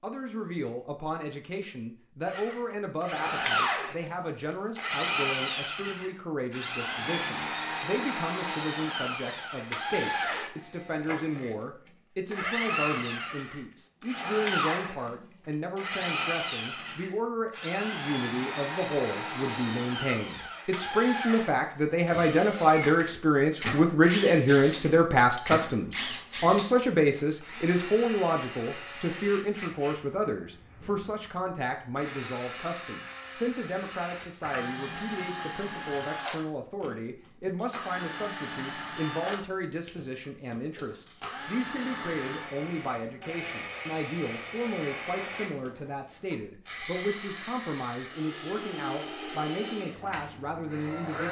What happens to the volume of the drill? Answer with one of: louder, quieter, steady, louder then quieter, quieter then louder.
quieter.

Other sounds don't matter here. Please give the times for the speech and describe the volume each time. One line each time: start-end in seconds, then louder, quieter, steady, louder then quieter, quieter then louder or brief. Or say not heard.
0.0-51.2 louder then quieter.